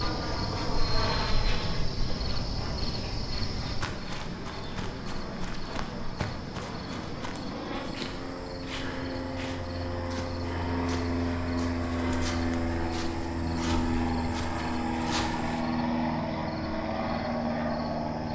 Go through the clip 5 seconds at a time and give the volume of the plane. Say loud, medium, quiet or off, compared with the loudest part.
medium, medium, loud, loud.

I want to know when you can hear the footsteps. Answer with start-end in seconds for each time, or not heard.
3.8-15.7.